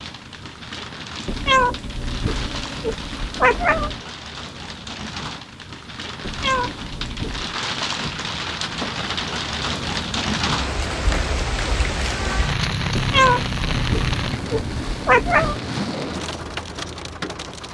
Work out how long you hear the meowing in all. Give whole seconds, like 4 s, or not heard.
7 s.